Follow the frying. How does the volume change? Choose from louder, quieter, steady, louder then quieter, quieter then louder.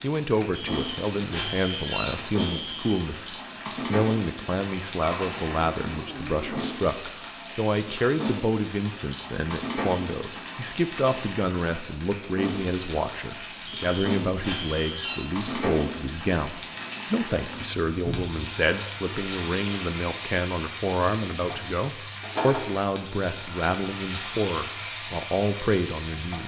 steady.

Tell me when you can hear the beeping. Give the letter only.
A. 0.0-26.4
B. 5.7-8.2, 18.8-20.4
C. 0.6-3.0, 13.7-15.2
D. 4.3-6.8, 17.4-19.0
C.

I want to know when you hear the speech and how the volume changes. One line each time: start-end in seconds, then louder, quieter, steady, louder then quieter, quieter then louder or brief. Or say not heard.
0.0-26.4 steady.